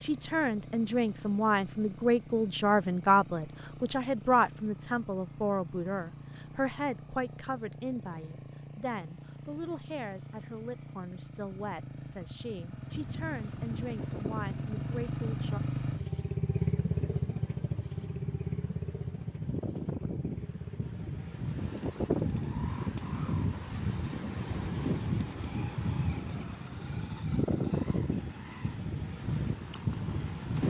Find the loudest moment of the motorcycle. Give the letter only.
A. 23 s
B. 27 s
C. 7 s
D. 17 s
D.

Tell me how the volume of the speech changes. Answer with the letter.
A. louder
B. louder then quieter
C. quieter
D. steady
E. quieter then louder
C.